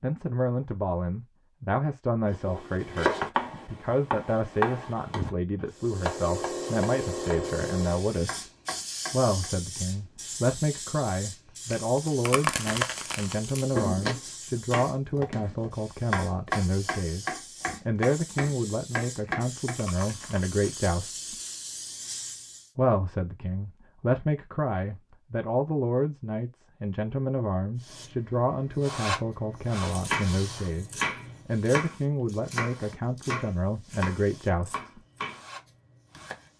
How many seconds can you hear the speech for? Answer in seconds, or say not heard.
33 s.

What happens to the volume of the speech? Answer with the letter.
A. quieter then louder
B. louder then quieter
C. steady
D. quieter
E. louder
C.